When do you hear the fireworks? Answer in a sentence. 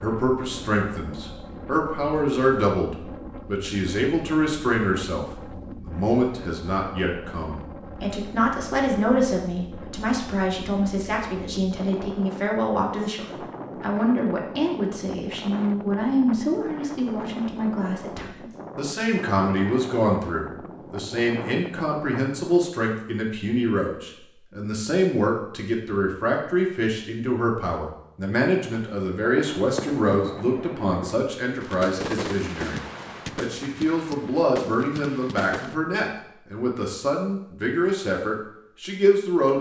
The fireworks can be heard from 28.7 to 35.8 s.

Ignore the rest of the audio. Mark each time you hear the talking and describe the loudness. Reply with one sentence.
The talking can be heard from 0.0 to 39.5 s, at a steady volume.